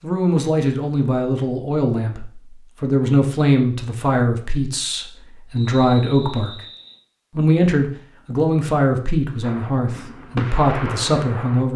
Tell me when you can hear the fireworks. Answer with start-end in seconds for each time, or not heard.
9.4-11.7.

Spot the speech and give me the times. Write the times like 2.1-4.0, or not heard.
0.0-6.6, 7.3-11.7.